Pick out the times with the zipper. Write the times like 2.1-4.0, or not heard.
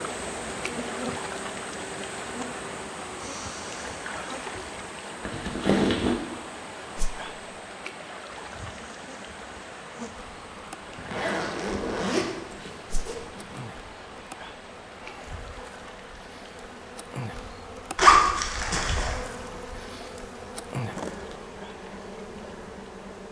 5.2-6.2, 10.9-13.6, 17.9-19.2.